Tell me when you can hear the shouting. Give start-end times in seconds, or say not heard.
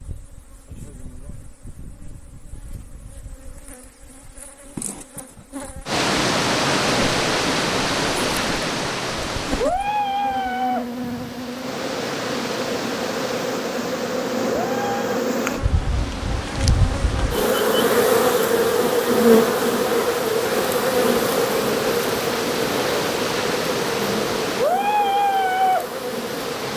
not heard.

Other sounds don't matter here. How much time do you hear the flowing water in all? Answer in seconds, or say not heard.
21 s.